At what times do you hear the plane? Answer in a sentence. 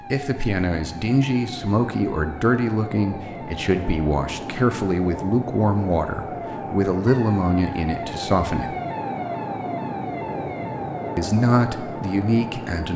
The plane can be heard from 0.0 to 12.9 s.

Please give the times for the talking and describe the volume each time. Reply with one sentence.
You can hear the talking from 0.1 to 8.8 s, at a steady volume; and briefly from 11.2 to 12.9 s.